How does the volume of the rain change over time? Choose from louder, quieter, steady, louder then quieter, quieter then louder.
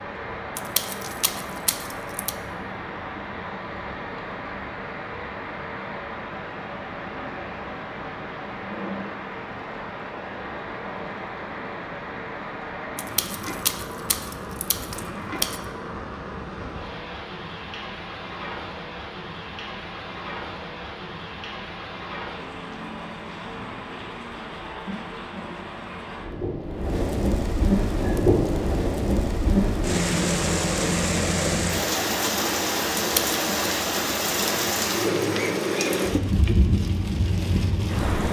louder.